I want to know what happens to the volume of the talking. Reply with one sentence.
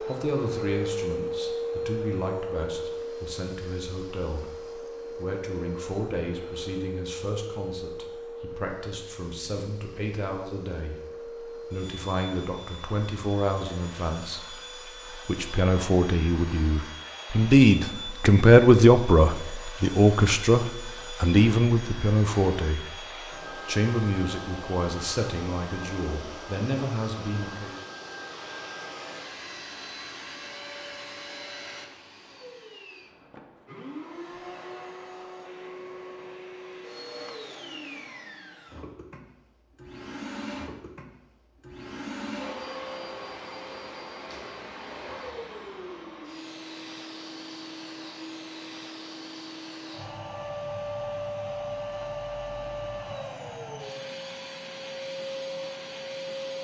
The loudness of the talking goes up, then down.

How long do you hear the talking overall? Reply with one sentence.
You can hear the talking for 27 seconds altogether.